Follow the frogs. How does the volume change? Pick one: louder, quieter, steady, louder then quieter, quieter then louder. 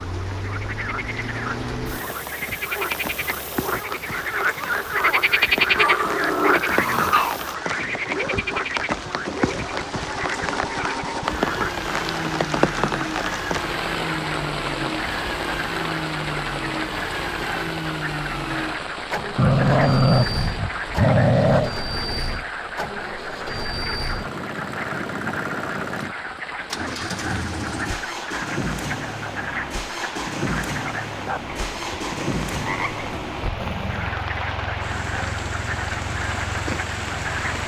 quieter.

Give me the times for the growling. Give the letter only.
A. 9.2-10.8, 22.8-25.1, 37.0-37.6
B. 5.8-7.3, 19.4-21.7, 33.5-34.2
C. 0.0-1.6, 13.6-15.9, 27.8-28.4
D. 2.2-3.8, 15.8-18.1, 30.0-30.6
B.